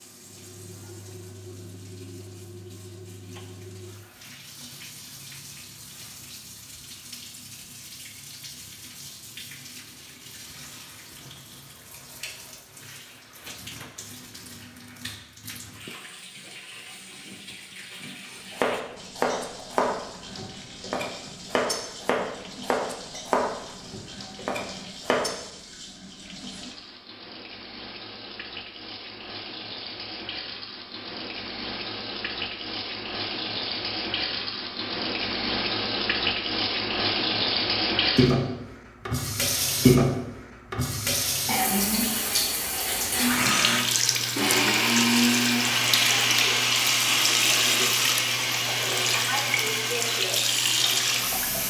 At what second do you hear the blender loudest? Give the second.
45 s.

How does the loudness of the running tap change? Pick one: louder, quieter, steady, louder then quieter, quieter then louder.
louder.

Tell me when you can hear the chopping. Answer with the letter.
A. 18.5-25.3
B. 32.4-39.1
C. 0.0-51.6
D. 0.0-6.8
A.